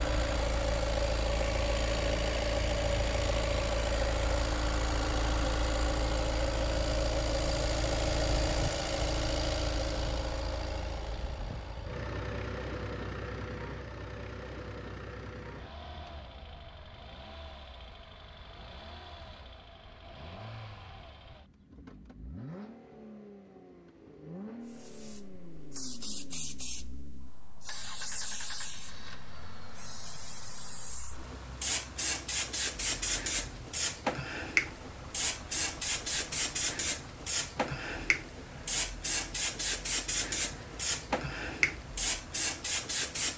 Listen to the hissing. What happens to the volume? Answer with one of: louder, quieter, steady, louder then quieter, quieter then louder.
louder.